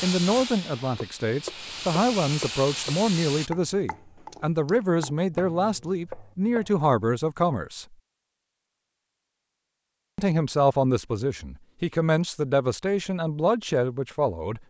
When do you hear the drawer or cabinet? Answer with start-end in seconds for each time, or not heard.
not heard.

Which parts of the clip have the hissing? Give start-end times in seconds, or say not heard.
0.0-3.5.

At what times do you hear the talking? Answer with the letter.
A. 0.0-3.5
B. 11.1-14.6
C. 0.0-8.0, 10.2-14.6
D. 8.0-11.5
C.